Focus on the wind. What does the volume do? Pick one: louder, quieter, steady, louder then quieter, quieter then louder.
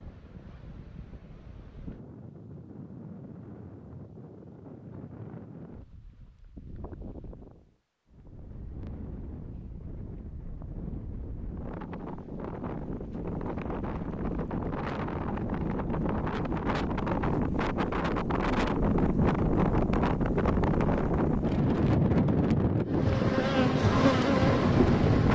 louder.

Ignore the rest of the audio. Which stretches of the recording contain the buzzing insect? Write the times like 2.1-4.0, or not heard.
22.9-25.3.